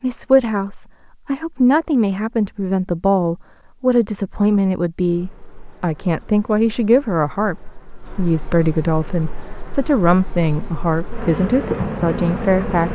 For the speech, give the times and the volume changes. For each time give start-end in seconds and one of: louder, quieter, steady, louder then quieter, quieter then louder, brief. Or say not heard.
0.0-12.9 steady.